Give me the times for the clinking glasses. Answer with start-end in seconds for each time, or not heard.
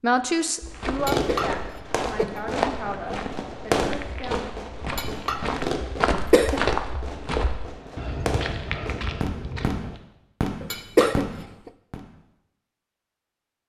1.1-2.4, 5.0-6.3, 10.7-11.4.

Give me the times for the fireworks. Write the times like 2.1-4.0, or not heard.
0.8-12.0.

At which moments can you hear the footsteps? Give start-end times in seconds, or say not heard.
0.6-10.0.